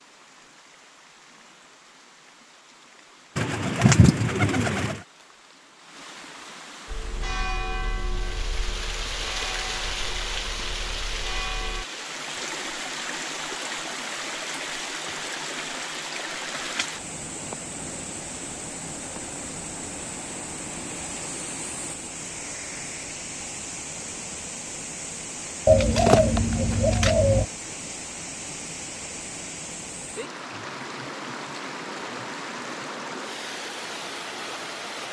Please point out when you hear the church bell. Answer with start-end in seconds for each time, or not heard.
6.8-11.8.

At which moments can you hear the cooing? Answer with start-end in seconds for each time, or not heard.
3.4-5.0, 25.6-27.4.